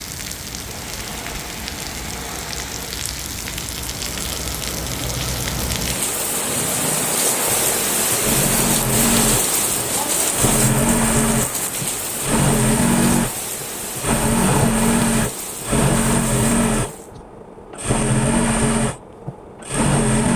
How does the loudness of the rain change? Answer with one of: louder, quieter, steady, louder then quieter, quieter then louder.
louder then quieter.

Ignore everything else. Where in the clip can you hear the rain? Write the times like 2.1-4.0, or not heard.
0.0-17.1.